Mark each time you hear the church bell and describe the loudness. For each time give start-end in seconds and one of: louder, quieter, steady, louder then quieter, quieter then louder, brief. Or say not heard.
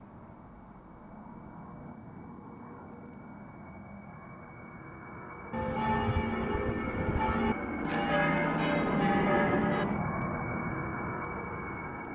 5.5-10.2 steady.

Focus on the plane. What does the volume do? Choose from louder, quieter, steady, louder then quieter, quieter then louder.
louder.